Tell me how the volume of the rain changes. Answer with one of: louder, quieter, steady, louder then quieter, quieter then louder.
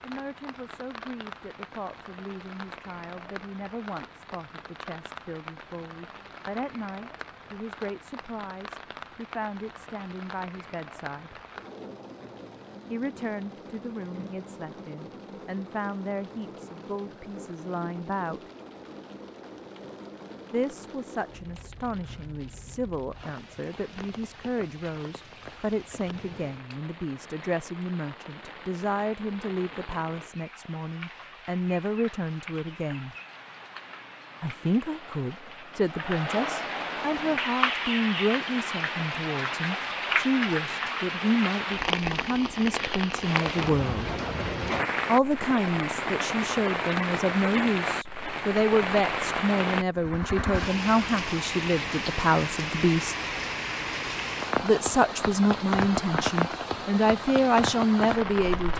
louder.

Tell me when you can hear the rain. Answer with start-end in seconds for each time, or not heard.
0.0-58.7.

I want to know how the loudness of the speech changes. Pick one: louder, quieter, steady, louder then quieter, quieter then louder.
louder.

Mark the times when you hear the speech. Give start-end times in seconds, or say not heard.
0.0-11.3, 12.9-18.5, 20.5-33.1, 34.4-44.1, 45.0-53.1, 54.6-58.7.